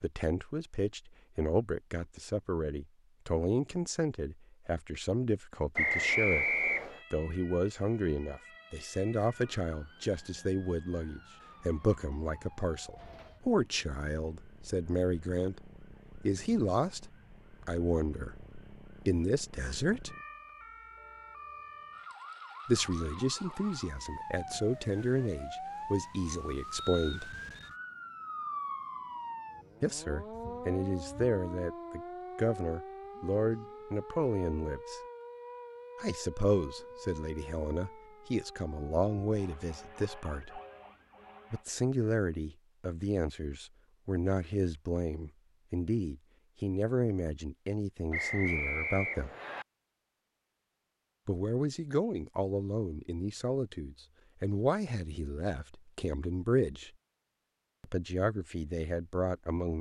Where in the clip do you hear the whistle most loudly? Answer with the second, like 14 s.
6 s.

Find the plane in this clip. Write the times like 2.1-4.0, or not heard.
not heard.